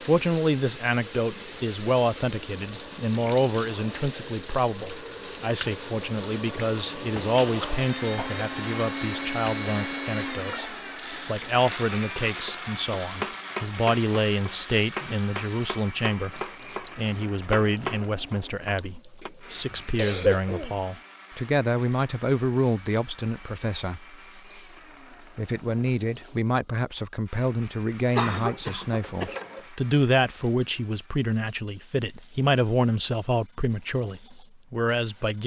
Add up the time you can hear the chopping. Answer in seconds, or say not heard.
7 s.